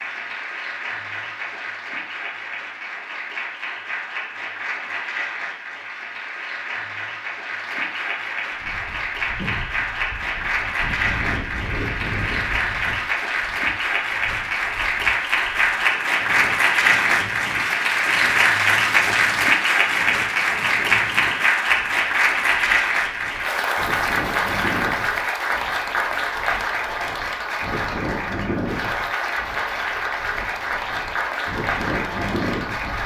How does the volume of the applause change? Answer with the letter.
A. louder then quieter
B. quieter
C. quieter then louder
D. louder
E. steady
A.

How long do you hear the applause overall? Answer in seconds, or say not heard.
33 s.